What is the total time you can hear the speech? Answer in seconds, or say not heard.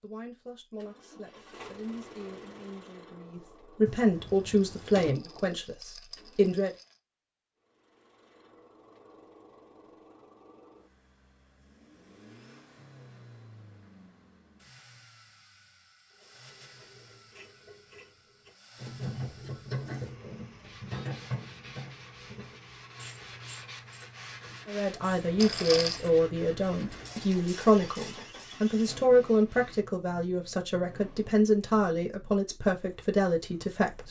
16 s.